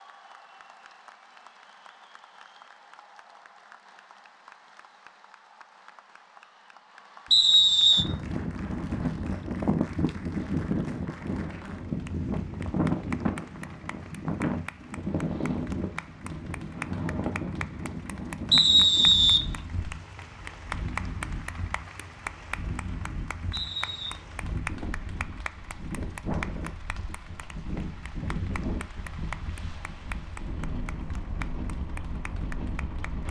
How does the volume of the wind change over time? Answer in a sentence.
The volume of the wind goes down.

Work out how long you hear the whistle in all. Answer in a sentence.
The whistle can be heard for 3 seconds in total.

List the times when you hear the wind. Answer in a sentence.
The wind can be heard from 8.0 to 33.2 s.